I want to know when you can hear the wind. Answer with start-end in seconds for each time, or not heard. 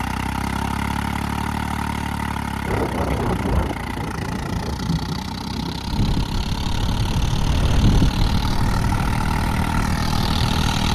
2.6-10.7.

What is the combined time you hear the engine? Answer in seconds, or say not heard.
11 s.